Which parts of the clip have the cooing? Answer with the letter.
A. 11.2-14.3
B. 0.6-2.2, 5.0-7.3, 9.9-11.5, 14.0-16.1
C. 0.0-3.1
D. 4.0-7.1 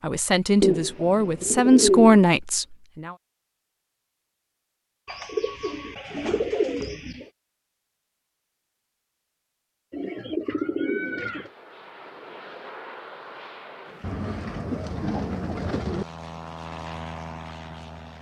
B.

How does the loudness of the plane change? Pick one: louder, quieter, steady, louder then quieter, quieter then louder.
louder.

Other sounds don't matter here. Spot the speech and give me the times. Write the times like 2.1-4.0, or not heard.
0.0-3.1.